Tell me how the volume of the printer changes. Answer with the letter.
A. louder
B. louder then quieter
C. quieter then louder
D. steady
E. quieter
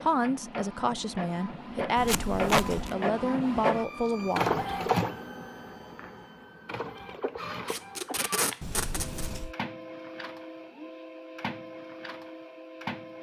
B.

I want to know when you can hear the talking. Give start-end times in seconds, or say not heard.
0.0-4.6.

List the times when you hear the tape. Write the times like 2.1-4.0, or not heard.
2.0-3.0, 7.7-9.3.